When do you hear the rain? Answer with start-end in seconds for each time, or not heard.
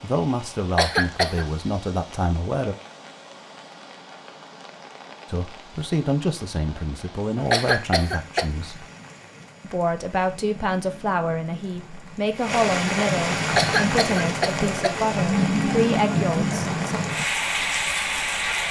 0.0-18.6.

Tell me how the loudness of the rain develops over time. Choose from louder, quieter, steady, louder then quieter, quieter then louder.
louder.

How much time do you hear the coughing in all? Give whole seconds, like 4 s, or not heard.
3 s.